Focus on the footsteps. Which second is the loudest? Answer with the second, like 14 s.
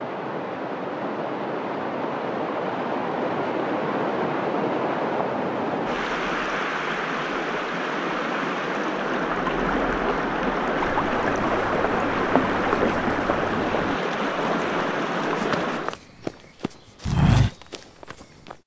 17 s.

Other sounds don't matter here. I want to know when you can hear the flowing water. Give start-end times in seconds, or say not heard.
0.0-15.9.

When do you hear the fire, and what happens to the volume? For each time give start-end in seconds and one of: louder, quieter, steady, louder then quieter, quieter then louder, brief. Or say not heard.
not heard.